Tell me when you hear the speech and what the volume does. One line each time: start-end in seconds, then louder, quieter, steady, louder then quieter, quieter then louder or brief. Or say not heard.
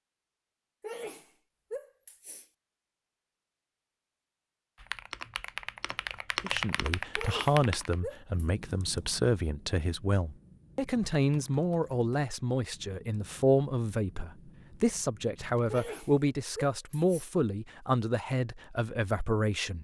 6.4-19.7 steady.